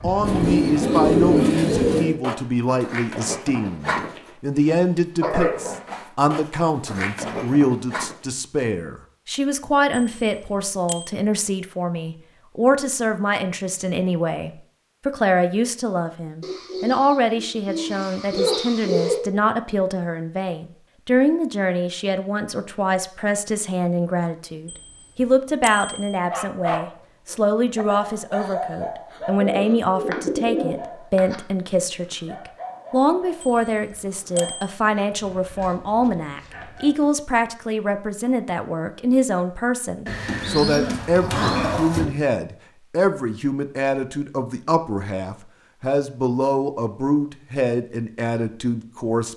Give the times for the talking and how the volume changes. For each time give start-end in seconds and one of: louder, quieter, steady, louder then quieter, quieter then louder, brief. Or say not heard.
0.0-49.3 steady.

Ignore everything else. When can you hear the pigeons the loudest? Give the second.
1 s.